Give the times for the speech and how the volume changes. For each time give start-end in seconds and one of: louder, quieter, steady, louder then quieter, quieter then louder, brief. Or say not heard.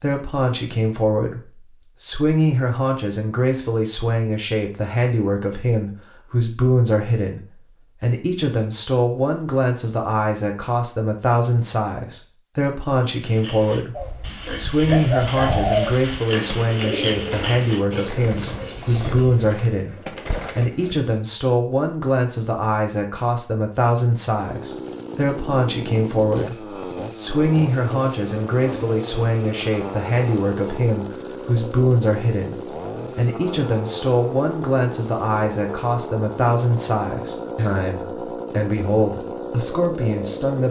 0.0-40.6 steady.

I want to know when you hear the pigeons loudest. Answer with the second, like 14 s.
16 s.